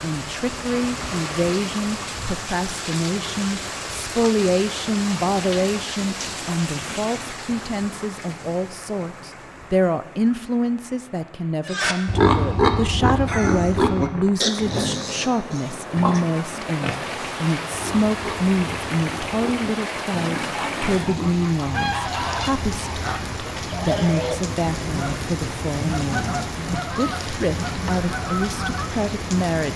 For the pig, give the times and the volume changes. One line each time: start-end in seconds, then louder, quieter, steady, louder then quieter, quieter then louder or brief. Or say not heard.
11.7-21.4 quieter.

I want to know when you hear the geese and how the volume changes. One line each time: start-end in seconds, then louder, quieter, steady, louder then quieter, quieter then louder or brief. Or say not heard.
20.5-28.9 steady.